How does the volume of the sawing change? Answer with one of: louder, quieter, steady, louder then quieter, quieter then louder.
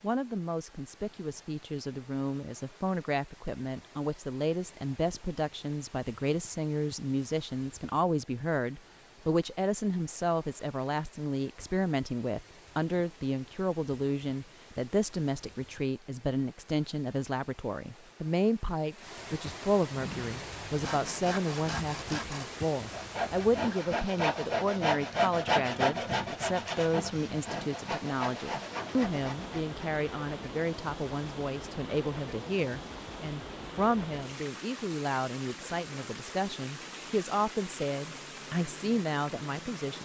louder then quieter.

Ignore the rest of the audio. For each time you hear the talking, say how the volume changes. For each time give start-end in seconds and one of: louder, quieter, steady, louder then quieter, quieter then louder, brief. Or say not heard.
0.0-40.0 steady.